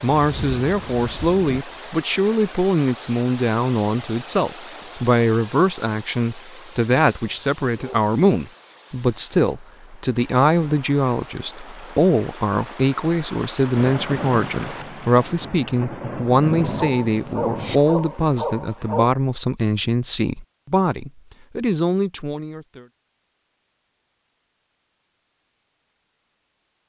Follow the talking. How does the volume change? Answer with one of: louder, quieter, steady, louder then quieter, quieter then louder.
steady.